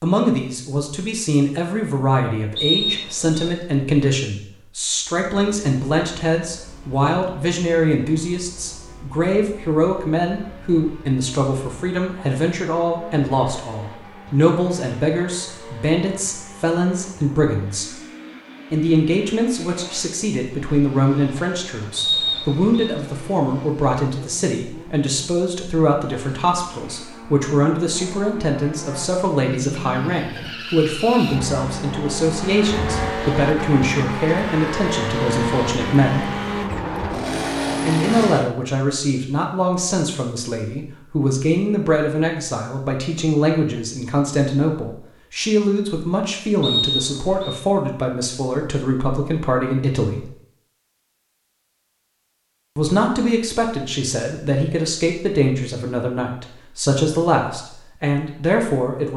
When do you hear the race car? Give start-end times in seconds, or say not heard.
5.3-38.5.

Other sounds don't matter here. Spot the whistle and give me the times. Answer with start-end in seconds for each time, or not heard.
2.5-3.5, 21.9-22.9, 46.6-47.6.